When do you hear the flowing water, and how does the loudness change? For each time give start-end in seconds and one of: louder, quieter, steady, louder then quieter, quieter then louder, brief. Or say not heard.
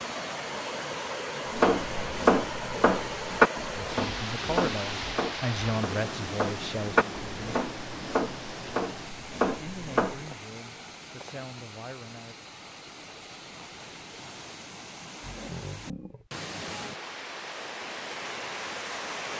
0.0-19.3 quieter then louder.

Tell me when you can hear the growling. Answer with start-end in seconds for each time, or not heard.
15.2-16.3.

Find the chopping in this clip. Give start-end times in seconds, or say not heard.
1.6-10.2.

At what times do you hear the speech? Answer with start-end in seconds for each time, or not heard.
3.8-7.5, 9.6-12.4.